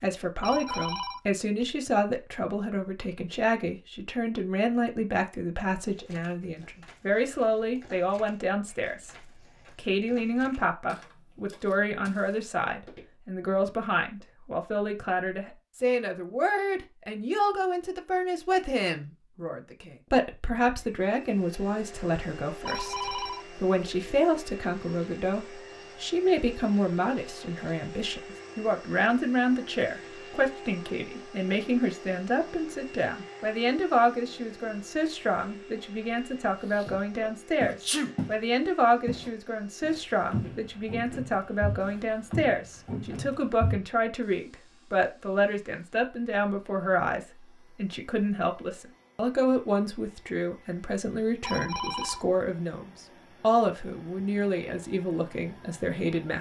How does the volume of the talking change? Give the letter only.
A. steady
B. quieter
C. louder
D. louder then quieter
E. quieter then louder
A.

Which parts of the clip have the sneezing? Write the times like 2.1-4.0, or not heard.
36.8-38.1.